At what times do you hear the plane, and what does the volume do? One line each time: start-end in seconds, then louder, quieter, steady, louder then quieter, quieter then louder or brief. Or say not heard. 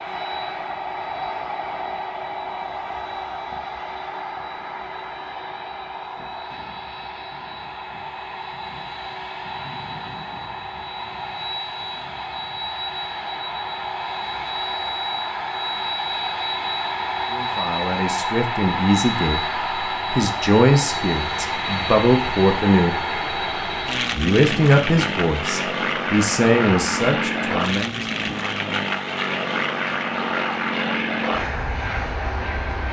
0.0-32.8 louder.